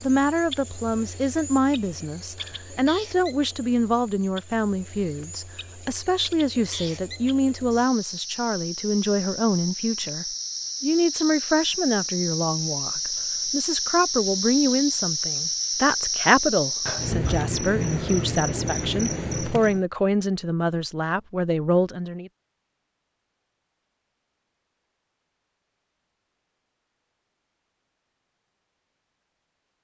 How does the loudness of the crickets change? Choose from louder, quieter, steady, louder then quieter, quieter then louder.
louder.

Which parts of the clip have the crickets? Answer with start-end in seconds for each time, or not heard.
0.0-19.9.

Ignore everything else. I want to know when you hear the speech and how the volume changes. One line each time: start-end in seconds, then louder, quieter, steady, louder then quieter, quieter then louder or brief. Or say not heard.
0.0-22.3 steady.